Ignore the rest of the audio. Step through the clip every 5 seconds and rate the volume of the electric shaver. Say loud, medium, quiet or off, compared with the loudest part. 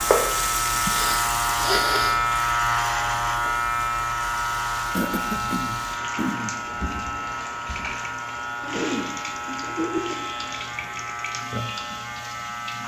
loud, medium, medium.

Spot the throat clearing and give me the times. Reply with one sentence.
You can hear the throat clearing from 0.8 to 2.2 s, from 4.9 to 6.5 s and from 8.6 to 10.2 s.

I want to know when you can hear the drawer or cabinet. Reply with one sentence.
The drawer or cabinet can be heard from 6.7 to 7.8 s.